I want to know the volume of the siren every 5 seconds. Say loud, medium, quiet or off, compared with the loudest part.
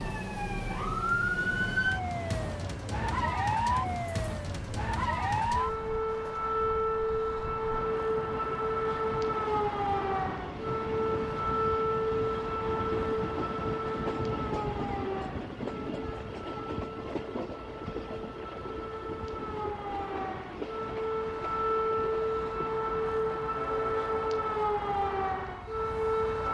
loud, loud, loud, medium, loud, loud.